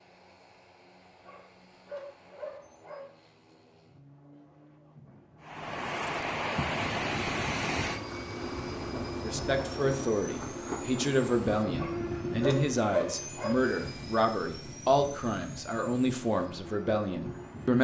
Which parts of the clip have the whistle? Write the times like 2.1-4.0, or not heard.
not heard.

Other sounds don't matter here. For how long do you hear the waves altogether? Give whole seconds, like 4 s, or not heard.
12 s.